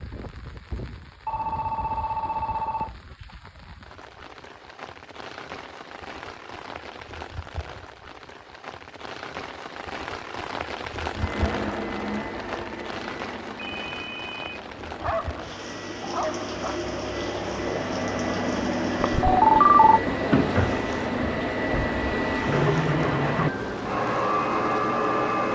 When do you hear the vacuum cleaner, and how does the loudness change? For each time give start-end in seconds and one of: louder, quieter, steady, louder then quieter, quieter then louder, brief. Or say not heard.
11.1-25.5 louder.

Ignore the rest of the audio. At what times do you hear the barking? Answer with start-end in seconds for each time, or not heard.
14.9-16.8.